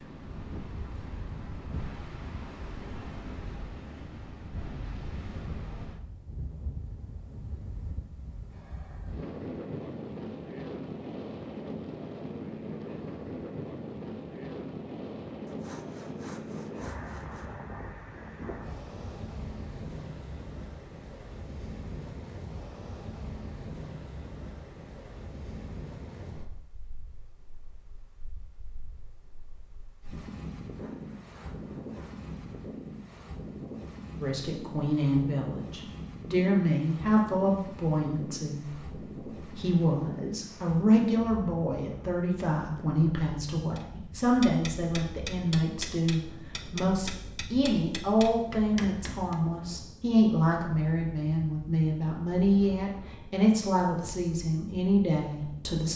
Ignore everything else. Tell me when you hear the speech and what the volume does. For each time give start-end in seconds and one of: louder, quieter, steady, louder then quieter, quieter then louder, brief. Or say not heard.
34.2-55.9 steady.